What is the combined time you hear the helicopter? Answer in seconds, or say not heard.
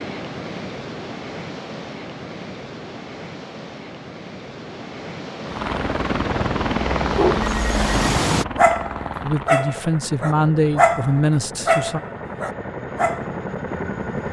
9 s.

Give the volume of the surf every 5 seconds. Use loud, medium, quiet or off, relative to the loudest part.
medium, loud, off.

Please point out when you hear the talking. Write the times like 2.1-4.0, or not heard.
9.2-12.0.